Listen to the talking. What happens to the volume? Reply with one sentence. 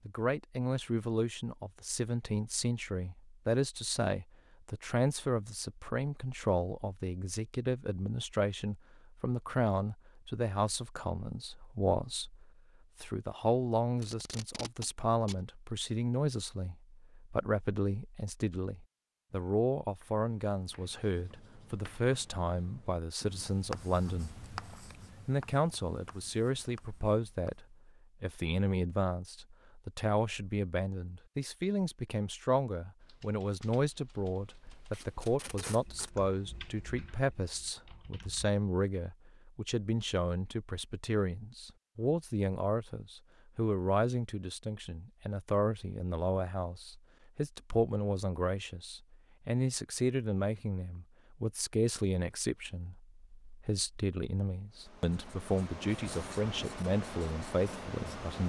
The loudness of the talking stays about the same.